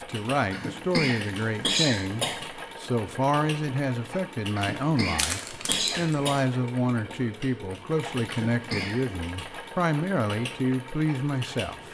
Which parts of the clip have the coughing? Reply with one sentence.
The coughing can be heard from 0.5 to 2.4 s, from 4.5 to 6.3 s and from 8.2 to 9.1 s.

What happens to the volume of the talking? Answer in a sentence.
The volume of the talking stays about the same.